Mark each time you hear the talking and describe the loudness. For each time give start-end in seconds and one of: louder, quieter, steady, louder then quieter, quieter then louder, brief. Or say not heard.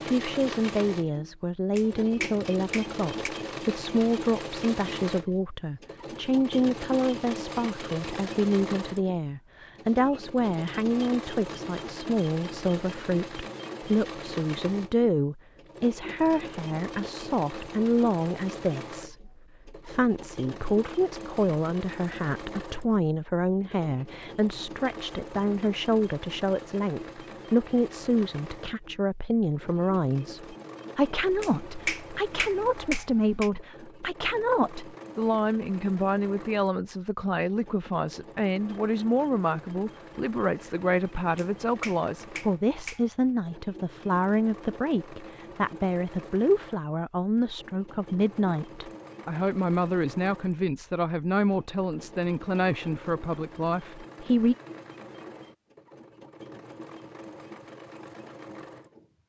0.0-54.5 steady.